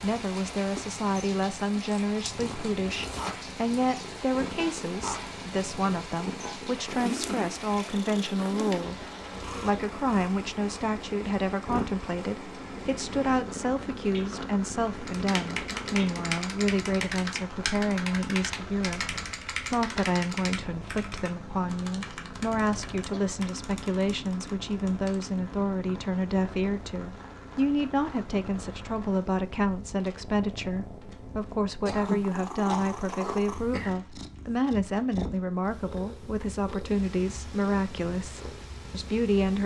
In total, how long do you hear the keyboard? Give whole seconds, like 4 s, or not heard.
10 s.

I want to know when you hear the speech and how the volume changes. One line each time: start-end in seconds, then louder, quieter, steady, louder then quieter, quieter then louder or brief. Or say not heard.
0.0-39.6 steady.